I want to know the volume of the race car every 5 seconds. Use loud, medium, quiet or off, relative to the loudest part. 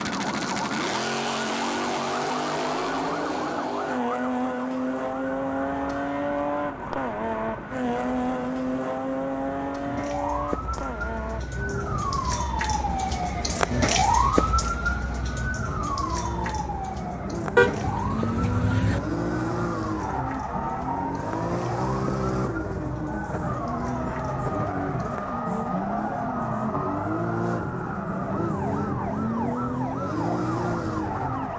loud, loud, medium, loud, loud, loud, loud.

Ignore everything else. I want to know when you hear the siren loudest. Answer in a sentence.
The volume of the siren peaks at 14 seconds.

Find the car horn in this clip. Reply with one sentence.
You can hear the car horn from 17.6 to 19.0 s.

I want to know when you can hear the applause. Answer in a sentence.
The applause can't be heard in this clip.